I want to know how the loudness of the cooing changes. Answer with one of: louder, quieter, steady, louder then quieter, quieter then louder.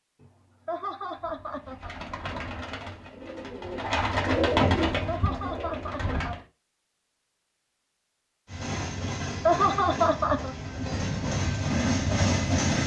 louder then quieter.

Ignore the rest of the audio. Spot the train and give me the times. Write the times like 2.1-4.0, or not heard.
8.4-12.8.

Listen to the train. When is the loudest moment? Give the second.
12 s.